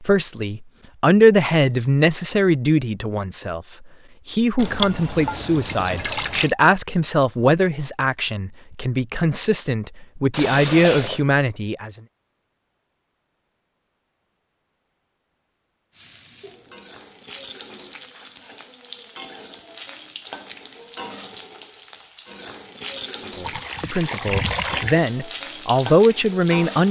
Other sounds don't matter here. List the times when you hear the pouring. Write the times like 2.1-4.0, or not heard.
4.5-6.5, 10.3-11.2, 23.4-25.0.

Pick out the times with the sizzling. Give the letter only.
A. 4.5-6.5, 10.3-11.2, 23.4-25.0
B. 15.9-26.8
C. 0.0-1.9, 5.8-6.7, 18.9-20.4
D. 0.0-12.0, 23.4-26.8
B.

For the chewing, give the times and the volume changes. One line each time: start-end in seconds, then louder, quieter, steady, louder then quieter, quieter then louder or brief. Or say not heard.
not heard.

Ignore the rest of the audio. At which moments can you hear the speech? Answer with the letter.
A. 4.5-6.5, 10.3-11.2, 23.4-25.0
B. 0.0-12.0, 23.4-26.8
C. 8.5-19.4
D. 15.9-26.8
B.